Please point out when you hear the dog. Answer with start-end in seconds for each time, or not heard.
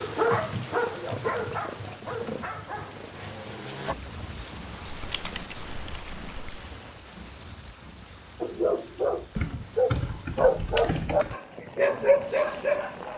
0.0-4.0, 8.4-13.1.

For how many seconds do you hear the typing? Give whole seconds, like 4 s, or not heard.
6 s.